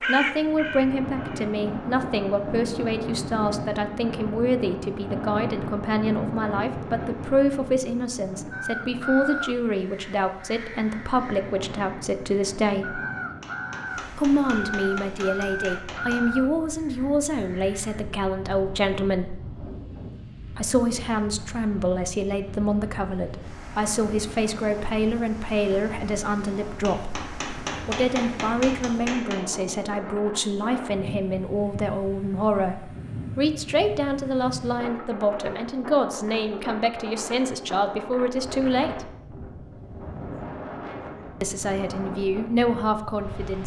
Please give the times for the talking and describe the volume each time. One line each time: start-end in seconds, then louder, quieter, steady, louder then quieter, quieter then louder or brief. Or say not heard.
0.1-13.0 steady
14.1-19.4 steady
20.4-39.1 steady
41.4-43.6 brief.